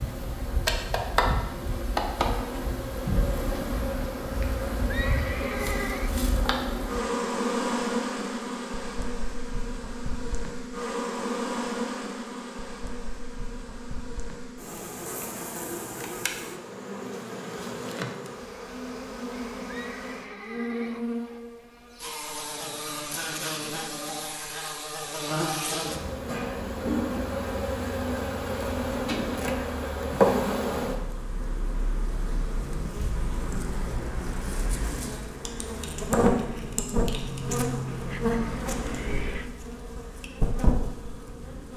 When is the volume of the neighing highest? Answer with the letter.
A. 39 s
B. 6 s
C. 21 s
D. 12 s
B.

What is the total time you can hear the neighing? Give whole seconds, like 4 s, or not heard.
5 s.